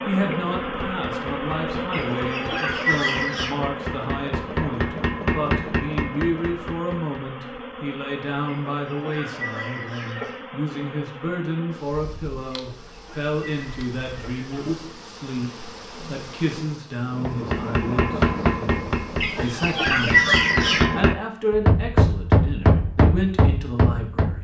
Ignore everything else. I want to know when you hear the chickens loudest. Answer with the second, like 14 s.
20 s.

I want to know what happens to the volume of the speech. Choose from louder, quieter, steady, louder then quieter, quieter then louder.
steady.